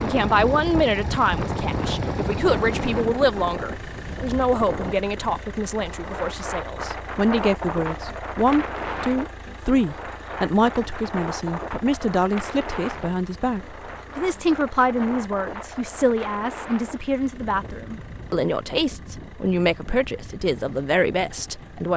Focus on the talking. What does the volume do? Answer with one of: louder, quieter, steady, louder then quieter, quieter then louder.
steady.